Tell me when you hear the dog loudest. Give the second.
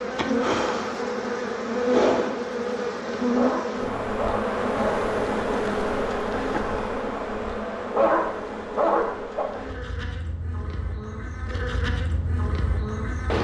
8 s.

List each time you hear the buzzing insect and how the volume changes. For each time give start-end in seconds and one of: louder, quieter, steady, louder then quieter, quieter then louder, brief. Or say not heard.
0.0-13.3 quieter.